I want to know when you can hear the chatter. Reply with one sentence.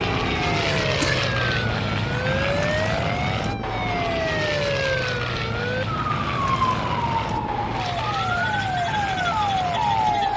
You can't hear the chatter here.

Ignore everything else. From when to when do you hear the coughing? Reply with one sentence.
You can hear the coughing from 0.7 to 1.4 s.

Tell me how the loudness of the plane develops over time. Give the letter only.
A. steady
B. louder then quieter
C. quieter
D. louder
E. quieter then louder
C.